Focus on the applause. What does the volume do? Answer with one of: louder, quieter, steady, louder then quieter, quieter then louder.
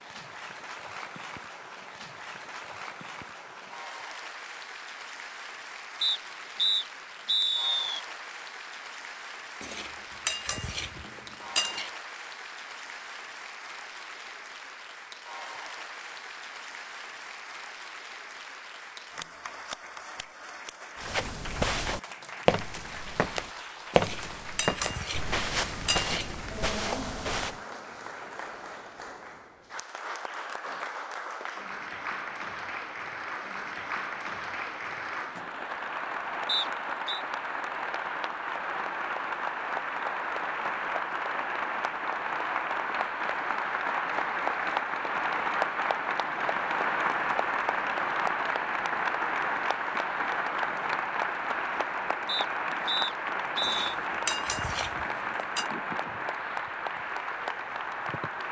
louder.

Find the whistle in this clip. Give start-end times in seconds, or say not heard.
6.0-8.0, 36.5-37.2, 52.2-53.9.